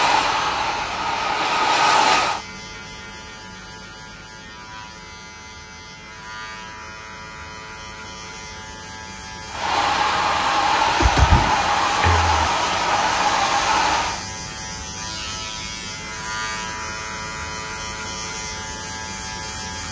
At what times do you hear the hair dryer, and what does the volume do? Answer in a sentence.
The hair dryer can be heard briefly from 0.0 to 2.5 s; and from 9.5 to 14.2 s, at a steady volume.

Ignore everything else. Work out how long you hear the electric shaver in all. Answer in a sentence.
You can hear the electric shaver for 20 seconds altogether.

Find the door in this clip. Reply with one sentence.
You can hear the door from 11.0 to 12.3 s.